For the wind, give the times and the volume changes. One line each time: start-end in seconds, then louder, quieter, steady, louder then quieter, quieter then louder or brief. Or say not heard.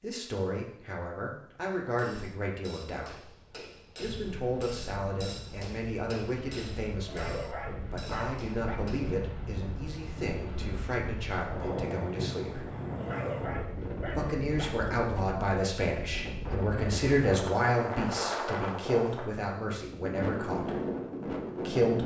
4.0-22.0 louder.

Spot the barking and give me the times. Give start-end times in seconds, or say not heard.
7.0-8.8, 13.0-14.7.